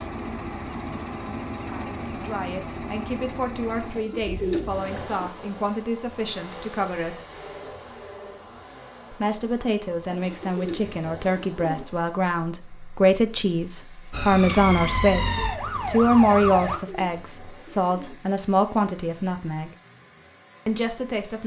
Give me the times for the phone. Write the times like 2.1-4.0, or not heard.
7.3-8.6.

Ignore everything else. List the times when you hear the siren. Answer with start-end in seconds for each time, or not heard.
14.1-16.8.